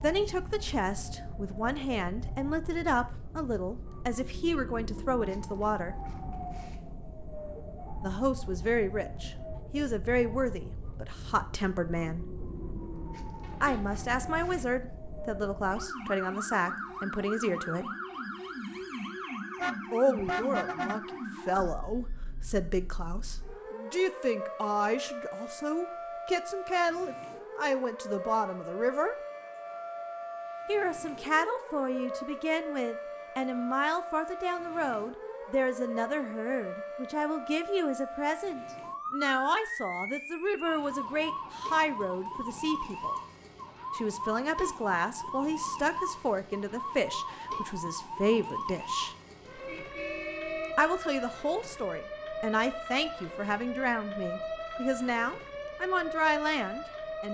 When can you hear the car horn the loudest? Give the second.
20 s.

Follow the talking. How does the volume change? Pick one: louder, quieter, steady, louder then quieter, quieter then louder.
steady.